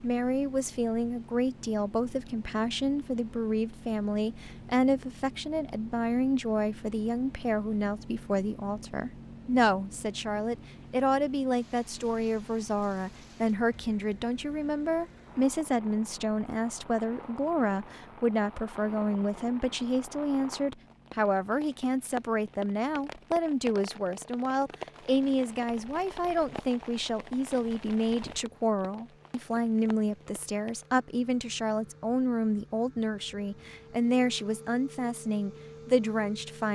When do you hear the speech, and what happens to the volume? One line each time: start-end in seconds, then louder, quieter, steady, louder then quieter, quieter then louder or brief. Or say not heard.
0.0-36.7 steady.